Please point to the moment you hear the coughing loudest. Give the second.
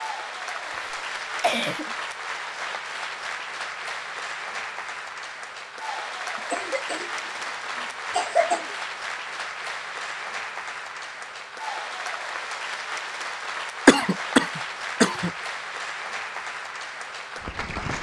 14 s.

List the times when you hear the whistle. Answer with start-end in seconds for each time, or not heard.
not heard.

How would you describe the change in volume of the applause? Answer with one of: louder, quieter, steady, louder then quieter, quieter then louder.
steady.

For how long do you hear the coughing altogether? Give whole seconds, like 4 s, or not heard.
5 s.